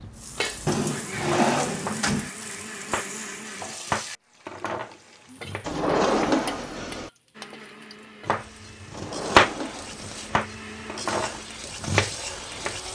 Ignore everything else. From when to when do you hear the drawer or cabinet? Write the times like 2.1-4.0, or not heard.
0.7-2.3, 5.7-7.1, 8.9-10.4.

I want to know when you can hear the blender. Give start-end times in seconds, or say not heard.
0.0-3.8, 7.3-12.9.